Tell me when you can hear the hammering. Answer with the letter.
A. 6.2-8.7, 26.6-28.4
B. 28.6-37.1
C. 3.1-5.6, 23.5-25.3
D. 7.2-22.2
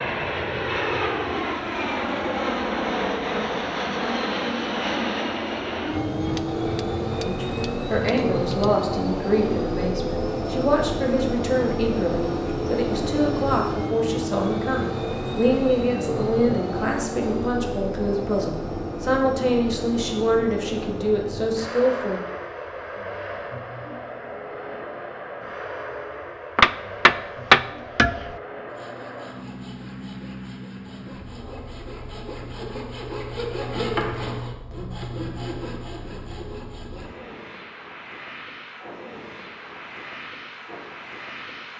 A.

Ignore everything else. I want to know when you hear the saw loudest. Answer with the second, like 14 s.
34 s.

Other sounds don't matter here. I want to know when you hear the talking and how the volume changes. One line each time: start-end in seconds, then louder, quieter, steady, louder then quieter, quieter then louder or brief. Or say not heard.
7.2-22.2 steady.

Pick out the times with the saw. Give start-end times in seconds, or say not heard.
28.6-37.1.